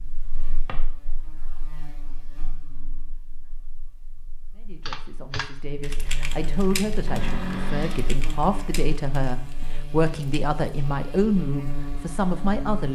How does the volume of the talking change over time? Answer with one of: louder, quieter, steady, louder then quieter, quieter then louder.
louder.